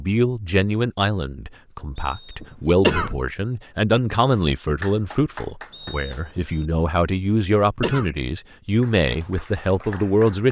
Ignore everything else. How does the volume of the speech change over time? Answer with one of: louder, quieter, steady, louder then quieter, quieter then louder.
steady.